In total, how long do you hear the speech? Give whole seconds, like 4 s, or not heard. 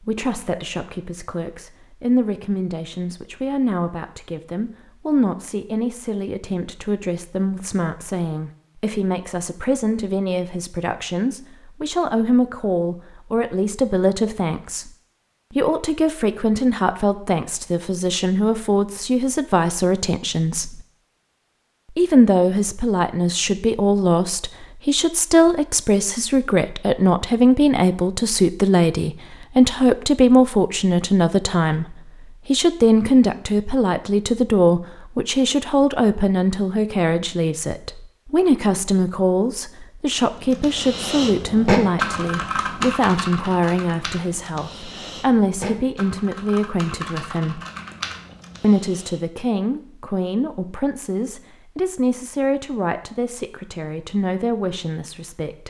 53 s.